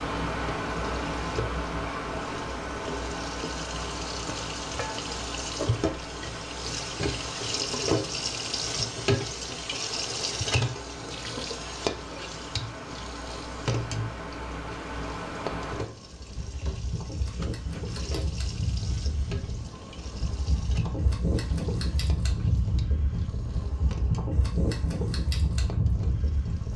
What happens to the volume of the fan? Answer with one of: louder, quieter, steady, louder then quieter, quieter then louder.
quieter then louder.